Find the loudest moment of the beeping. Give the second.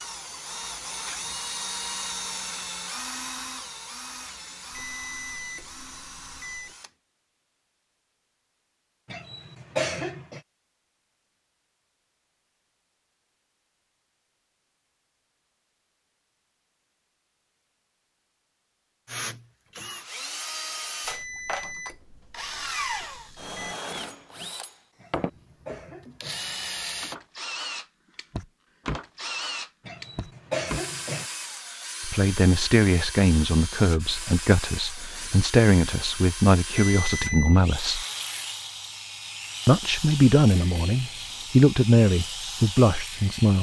37 s.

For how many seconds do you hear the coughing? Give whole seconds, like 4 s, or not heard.
4 s.